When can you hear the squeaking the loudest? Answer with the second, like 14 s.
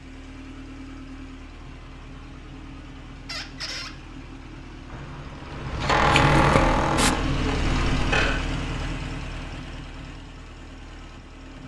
6 s.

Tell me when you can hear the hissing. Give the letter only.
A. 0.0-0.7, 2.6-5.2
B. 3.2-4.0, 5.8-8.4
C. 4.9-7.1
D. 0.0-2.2
C.